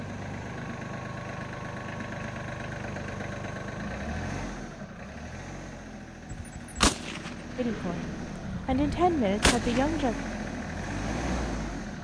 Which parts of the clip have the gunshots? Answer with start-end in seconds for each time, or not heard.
6.3-9.8.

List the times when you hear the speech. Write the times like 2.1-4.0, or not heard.
7.5-10.2.